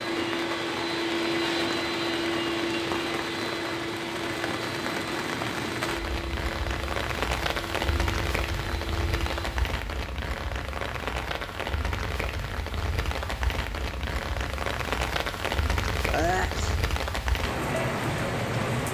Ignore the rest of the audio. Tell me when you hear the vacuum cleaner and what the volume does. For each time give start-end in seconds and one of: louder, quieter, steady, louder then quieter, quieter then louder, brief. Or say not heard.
0.0-9.7 quieter.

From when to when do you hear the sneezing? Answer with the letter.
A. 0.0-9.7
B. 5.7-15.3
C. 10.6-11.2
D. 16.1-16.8
D.